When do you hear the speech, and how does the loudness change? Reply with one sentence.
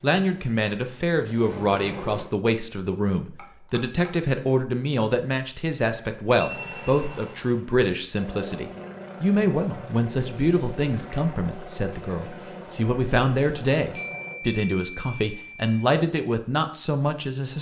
The speech can be heard from 0.0 to 17.5 s, at a steady volume.